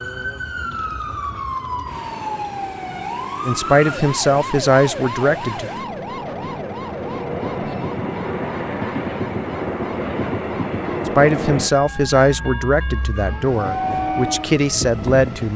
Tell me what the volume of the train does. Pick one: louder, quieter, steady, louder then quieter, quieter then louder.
louder.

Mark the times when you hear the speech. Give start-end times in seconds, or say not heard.
3.5-5.7, 11.1-15.5.